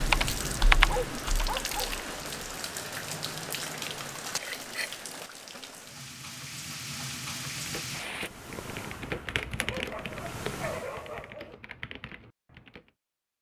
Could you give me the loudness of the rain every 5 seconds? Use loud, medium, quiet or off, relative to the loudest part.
loud, loud, off.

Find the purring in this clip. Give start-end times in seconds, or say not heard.
8.1-11.3.